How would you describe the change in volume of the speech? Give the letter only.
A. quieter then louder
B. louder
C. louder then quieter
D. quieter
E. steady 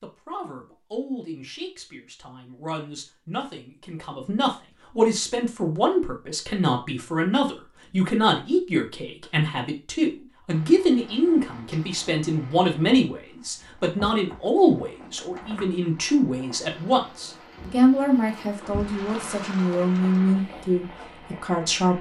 B.